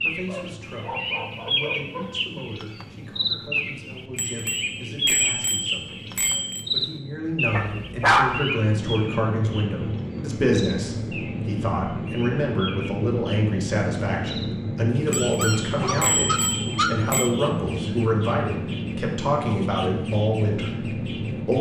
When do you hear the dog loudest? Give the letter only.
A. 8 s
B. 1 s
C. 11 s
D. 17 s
A.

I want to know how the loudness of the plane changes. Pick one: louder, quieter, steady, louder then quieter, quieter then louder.
louder.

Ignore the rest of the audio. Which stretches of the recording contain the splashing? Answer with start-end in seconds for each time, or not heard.
not heard.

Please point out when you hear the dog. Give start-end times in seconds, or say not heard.
0.2-2.1, 7.5-8.4, 15.1-17.1.